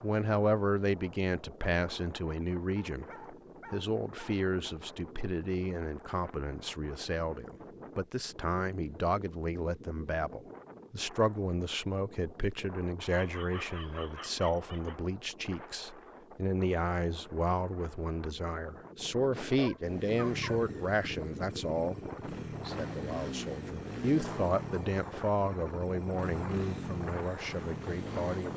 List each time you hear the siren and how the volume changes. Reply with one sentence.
The siren can't be heard in this clip.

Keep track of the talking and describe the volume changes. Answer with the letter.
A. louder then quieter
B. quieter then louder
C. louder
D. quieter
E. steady
E.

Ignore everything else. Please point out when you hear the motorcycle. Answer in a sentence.
You can hear the motorcycle from 19.8 to 28.5 s.